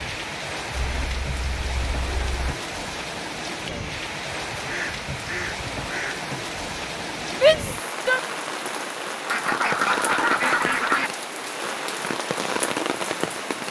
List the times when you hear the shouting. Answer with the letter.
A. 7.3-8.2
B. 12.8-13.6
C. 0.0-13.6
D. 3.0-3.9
A.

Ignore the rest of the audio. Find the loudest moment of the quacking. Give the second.
10 s.